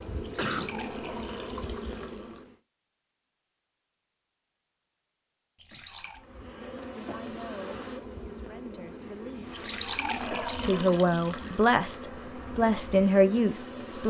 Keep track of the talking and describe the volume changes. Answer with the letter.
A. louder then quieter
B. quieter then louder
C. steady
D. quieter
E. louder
E.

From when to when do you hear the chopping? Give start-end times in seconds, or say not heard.
not heard.